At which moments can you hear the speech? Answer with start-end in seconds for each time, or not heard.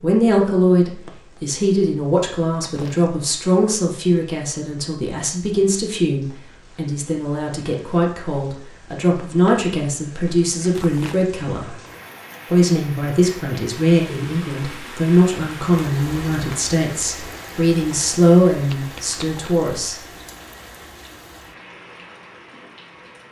0.0-11.8, 12.5-20.0.